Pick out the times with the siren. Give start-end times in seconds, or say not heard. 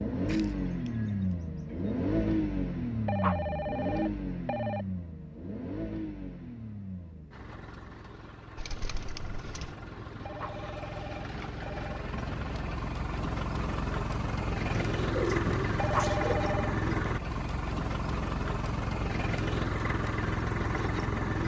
not heard.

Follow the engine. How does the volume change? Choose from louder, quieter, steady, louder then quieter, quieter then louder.
quieter then louder.